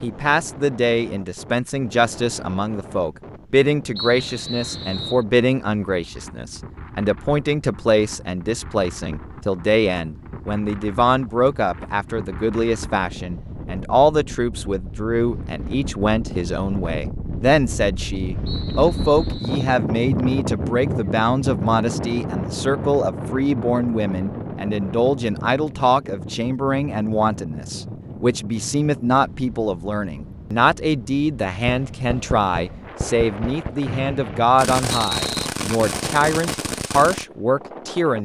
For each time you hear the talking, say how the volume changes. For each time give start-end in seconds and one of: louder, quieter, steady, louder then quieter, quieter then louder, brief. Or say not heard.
0.0-38.2 steady.